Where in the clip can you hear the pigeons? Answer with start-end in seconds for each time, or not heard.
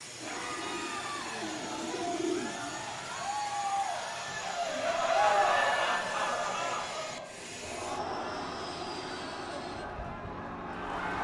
0.2-2.8.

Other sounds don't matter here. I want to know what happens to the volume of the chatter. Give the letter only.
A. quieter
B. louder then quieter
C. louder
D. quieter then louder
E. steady
B.